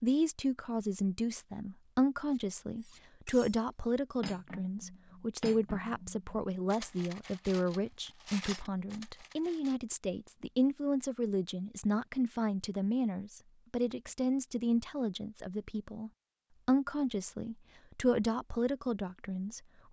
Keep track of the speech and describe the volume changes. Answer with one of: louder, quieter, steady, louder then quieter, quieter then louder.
steady.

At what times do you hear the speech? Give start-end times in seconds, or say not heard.
0.0-19.6.